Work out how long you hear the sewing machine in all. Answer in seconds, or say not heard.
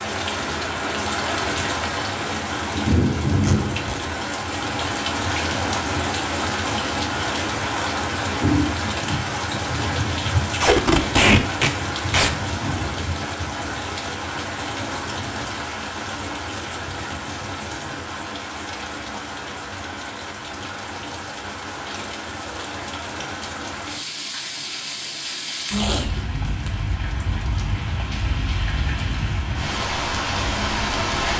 not heard.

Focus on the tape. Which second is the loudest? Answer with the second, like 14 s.
11 s.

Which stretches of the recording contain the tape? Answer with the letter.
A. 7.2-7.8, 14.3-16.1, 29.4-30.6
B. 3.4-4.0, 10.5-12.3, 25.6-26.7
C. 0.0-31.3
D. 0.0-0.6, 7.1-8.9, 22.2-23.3
B.